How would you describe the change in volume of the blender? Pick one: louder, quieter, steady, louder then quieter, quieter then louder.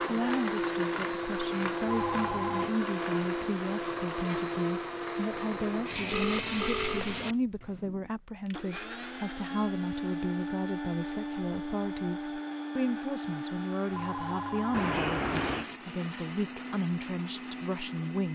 quieter.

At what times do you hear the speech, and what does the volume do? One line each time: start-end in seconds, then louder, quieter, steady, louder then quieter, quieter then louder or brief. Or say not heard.
0.1-18.3 steady.